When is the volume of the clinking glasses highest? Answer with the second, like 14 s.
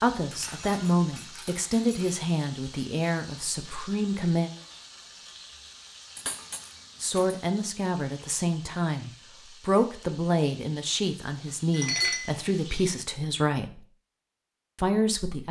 12 s.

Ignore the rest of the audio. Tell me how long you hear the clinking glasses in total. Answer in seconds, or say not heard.
4 s.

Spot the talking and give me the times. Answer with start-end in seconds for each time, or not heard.
0.0-4.5, 7.0-13.8, 14.8-15.4.